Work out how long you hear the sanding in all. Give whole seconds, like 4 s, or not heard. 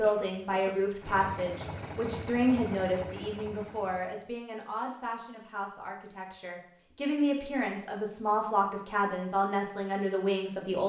not heard.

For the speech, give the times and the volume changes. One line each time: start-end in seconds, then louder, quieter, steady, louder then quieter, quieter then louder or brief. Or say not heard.
0.0-10.8 quieter then louder.